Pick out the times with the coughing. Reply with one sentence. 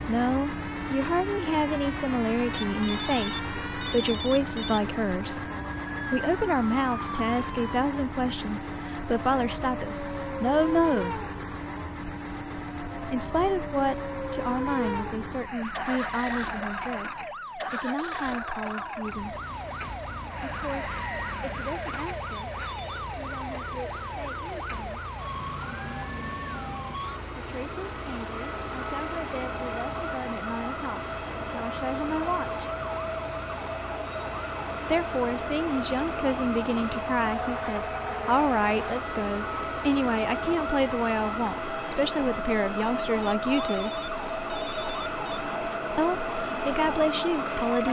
The coughing can't be heard in this clip.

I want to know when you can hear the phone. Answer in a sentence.
The phone can be heard from 2.5 to 4.9 s, from 22.3 to 23.1 s and from 43.2 to 45.4 s.